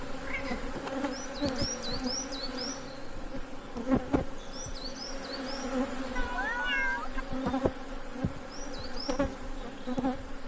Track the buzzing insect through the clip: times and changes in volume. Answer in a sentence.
The buzzing insect can be heard from 0.0 to 10.4 s, at a steady volume.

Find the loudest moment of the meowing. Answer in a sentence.
The loudest moment of the meowing is at 7 seconds.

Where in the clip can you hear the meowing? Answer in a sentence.
The meowing can be heard from 0.2 to 0.8 s and from 6.2 to 7.2 s.